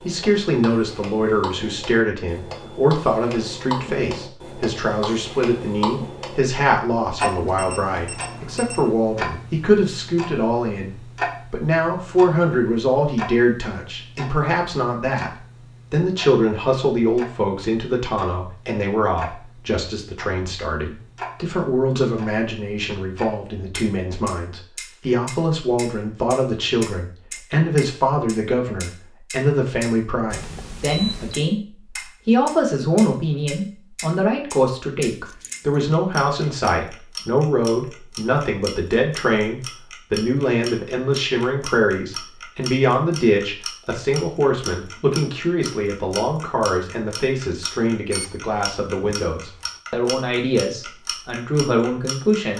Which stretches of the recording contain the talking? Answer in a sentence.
The talking can be heard from 0.0 to 15.3 s and from 15.9 to 52.5 s.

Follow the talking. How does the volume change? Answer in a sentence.
The loudness of the talking stays about the same.